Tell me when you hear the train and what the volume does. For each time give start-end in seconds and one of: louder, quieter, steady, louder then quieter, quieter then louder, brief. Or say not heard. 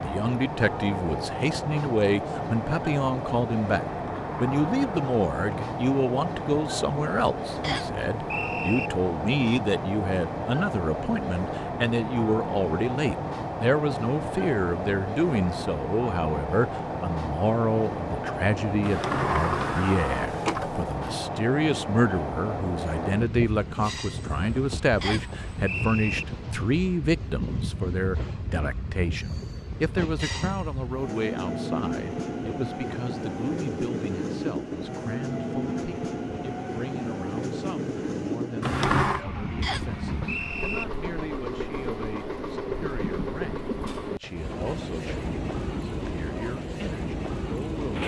0.0-48.0 steady.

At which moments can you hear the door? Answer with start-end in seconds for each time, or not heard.
3.9-5.7, 18.8-20.9, 38.6-39.2.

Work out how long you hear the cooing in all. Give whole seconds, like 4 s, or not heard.
not heard.